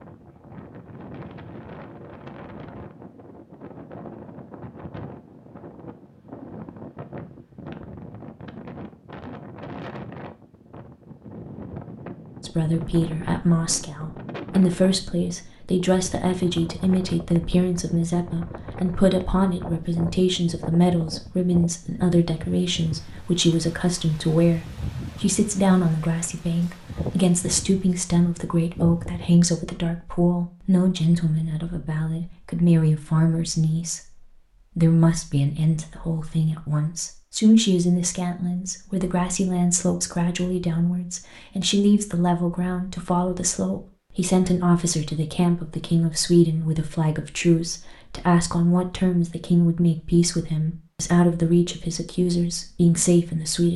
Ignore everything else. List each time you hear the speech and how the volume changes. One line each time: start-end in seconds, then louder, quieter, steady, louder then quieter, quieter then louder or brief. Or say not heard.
12.4-53.7 steady.